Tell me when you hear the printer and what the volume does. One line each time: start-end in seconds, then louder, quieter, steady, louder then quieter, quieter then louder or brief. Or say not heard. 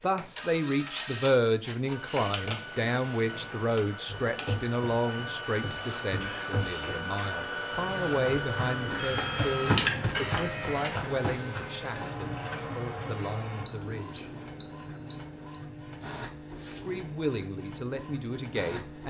0.0-19.0 louder then quieter.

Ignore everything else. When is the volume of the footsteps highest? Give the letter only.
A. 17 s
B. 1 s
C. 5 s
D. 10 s
D.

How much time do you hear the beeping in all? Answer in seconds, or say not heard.
2 s.